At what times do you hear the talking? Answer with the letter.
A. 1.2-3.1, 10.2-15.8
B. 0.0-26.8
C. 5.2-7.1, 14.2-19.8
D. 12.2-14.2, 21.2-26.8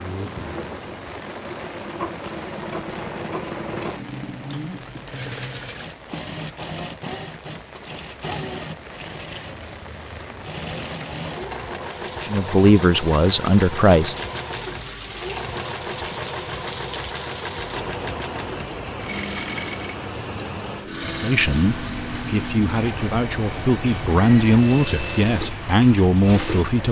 D.